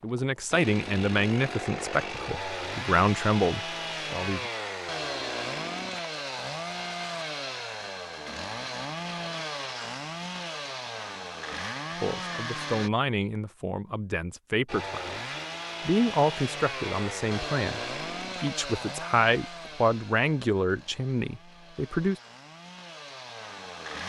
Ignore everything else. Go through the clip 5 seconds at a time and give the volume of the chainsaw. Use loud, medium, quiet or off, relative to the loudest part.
loud, loud, loud, loud, medium.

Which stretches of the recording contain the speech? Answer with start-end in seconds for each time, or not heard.
0.0-4.5, 12.0-15.2, 15.8-22.1.